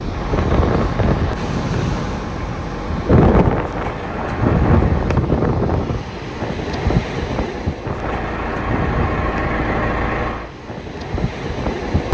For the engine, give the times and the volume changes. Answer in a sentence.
The engine can be heard from 0.0 to 5.2 s, at a steady volume; and briefly from 7.8 to 10.5 s.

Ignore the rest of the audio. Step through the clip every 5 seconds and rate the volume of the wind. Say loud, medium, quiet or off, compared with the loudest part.
loud, loud, medium.